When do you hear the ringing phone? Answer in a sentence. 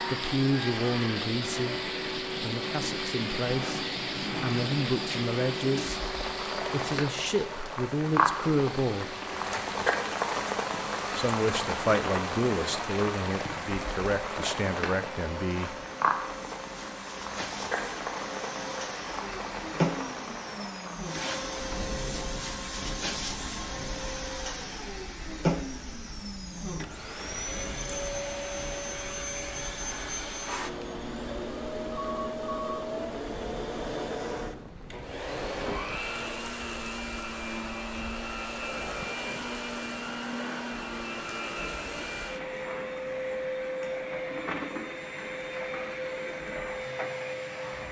You can hear the ringing phone from 31.9 to 32.8 s.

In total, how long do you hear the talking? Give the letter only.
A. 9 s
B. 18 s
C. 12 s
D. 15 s
C.